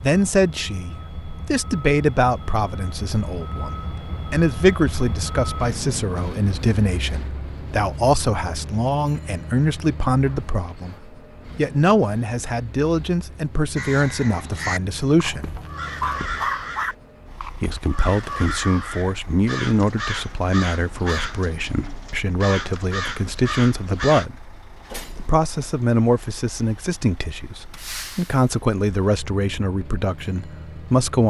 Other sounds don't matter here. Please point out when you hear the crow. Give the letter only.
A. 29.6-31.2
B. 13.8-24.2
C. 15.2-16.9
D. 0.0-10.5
B.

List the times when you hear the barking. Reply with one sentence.
The barking can be heard from 15.2 to 16.9 s.